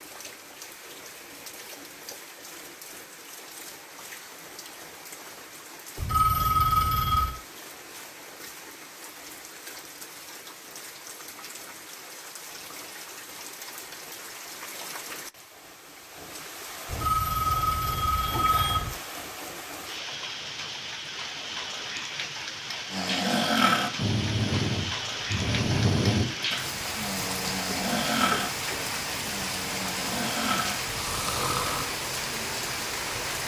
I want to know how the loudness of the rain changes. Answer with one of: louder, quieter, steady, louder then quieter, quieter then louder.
louder.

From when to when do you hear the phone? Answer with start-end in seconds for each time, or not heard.
6.0-7.3, 16.9-18.9.